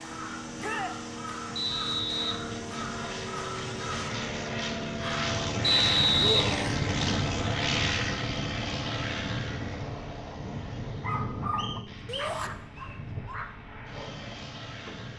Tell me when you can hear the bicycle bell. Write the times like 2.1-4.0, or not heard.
not heard.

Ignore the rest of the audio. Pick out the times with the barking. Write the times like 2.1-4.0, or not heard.
11.0-15.1.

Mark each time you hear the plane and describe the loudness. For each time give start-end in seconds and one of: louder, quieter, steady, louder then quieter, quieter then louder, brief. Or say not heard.
0.0-15.1 louder then quieter.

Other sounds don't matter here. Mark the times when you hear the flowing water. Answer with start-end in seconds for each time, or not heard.
not heard.